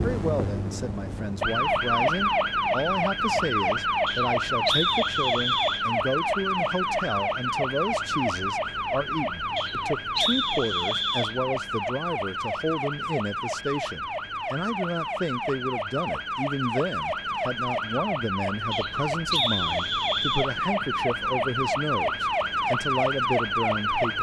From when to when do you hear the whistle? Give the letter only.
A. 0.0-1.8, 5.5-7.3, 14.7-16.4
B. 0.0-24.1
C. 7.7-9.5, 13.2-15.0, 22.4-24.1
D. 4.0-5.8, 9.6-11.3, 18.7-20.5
D.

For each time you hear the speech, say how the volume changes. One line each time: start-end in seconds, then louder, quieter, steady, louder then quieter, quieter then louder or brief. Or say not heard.
0.0-24.1 steady.